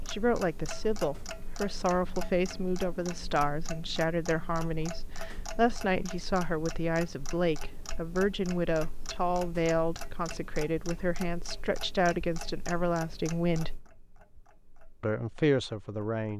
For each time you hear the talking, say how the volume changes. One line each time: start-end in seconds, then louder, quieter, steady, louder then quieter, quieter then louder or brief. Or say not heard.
0.1-13.8 steady
15.0-16.3 brief.